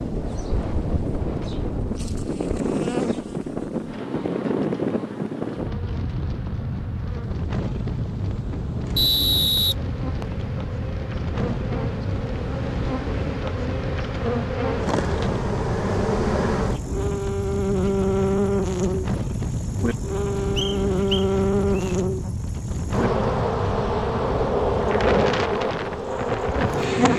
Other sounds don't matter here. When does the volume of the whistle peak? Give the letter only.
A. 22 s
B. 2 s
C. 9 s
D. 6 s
C.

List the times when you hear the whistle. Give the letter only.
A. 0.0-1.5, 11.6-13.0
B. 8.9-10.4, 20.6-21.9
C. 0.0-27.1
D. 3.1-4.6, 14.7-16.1
B.